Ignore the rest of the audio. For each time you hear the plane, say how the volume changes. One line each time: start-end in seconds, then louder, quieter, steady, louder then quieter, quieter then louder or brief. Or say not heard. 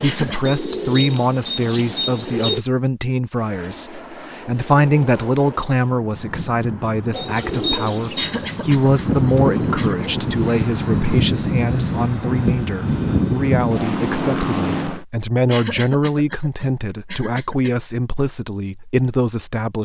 3.3-15.1 louder.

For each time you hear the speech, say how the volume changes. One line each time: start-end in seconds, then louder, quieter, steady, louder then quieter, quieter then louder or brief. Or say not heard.
0.0-19.7 steady.